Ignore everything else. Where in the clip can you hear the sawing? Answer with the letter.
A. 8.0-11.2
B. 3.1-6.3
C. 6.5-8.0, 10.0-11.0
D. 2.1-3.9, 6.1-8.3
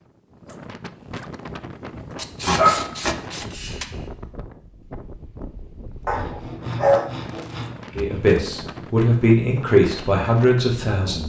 D.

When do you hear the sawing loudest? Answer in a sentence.
The loudest moment of the sawing is at 3 seconds.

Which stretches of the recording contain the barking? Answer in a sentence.
The barking can be heard from 2.5 to 4.0 s and from 6.0 to 7.0 s.